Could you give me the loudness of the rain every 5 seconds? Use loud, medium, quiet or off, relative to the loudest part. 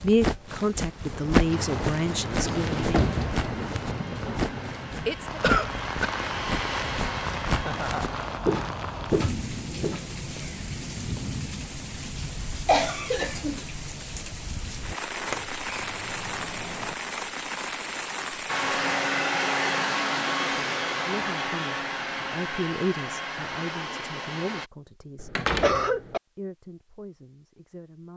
loud, loud, loud, loud, off, off.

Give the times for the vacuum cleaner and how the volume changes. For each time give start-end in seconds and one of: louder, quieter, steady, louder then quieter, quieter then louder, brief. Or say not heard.
1.6-8.3 louder
18.4-24.7 quieter.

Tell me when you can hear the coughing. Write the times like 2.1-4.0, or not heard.
5.0-6.1, 12.7-13.7, 25.1-26.2.